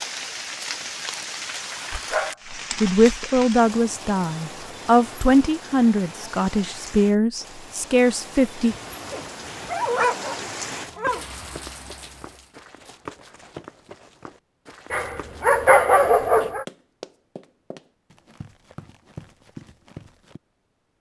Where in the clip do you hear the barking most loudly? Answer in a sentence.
The loudest moment of the barking is at 16 seconds.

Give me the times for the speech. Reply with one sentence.
You can hear the speech from 2.8 to 8.8 s.